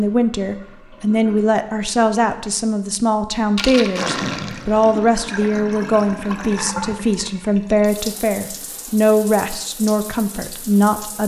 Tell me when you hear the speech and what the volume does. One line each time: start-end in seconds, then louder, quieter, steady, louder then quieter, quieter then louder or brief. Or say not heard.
0.0-11.2 steady.